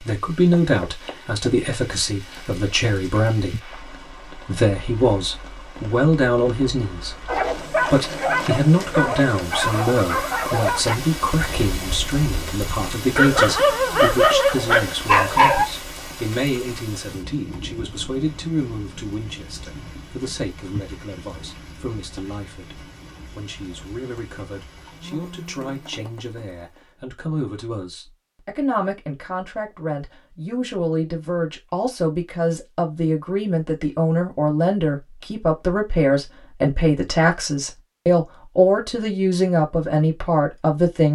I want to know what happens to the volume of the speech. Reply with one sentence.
The volume of the speech goes down, then up.